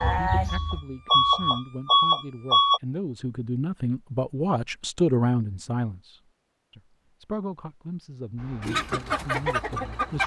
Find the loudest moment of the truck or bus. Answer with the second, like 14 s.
2 s.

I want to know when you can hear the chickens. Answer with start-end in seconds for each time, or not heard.
0.0-1.5, 8.6-10.2.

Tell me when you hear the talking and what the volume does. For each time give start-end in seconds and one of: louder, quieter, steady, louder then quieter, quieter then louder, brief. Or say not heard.
0.0-10.2 louder then quieter.